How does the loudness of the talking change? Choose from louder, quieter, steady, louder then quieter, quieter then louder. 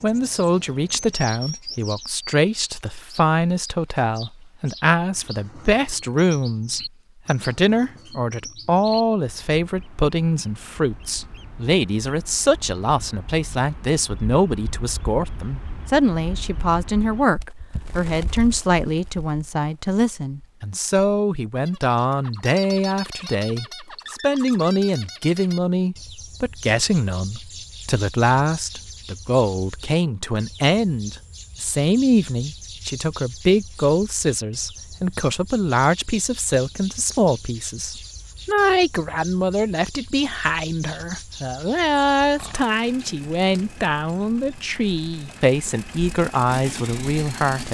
steady.